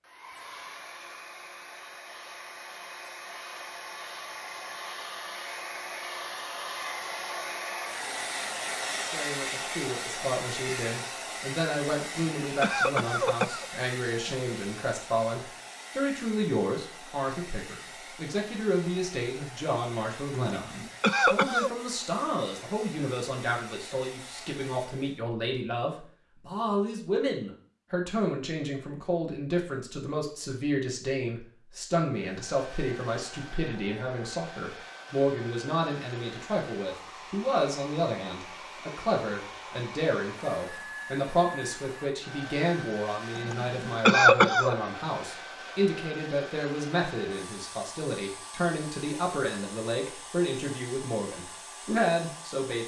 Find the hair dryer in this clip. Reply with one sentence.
You can hear the hair dryer from 0.0 to 25.2 s and from 32.0 to 52.8 s.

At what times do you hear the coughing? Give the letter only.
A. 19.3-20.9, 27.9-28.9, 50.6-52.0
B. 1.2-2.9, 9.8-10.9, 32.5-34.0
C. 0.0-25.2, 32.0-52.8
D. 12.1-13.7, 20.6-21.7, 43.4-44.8
D.